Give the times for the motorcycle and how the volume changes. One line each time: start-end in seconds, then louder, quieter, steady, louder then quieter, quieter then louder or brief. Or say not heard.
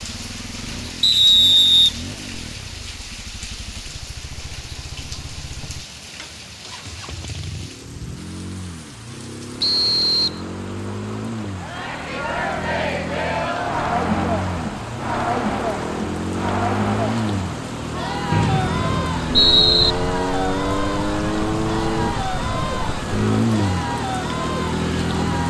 0.0-25.4 louder.